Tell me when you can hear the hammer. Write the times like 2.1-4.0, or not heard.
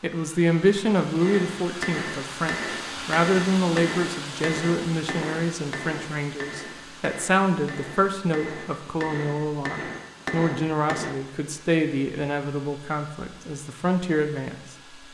1.2-11.2.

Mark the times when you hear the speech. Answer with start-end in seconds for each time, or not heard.
0.0-15.0.